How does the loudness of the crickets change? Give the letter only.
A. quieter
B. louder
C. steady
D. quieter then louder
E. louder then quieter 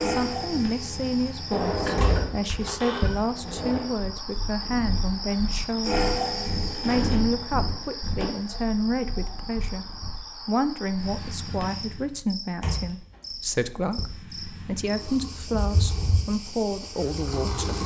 E.